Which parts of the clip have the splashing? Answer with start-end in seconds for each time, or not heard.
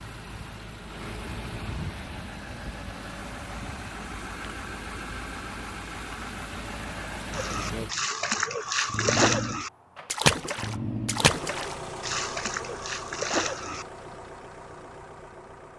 7.3-13.8.